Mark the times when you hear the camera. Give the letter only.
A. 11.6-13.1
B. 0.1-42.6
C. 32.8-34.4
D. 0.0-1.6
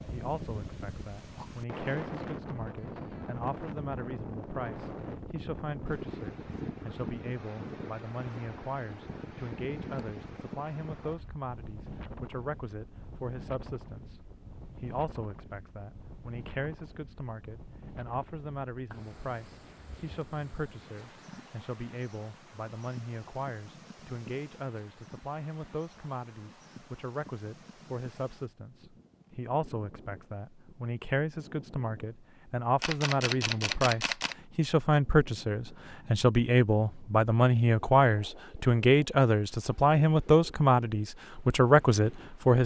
C.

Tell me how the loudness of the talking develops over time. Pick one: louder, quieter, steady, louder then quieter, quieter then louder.
louder.